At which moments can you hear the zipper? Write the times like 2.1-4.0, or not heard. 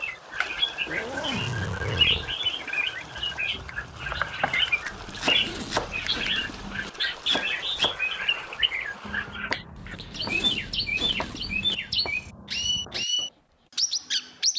0.8-2.6, 4.9-6.9, 9.8-11.8.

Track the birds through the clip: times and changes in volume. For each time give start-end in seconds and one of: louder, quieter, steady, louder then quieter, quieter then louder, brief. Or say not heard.
0.0-14.5 steady.